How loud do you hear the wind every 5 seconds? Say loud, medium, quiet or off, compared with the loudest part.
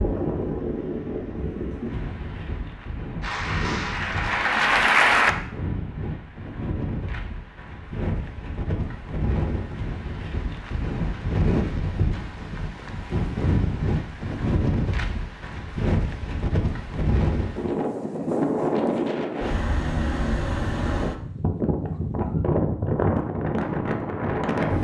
medium, medium, loud, loud, loud.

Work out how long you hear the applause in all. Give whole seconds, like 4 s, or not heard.
2 s.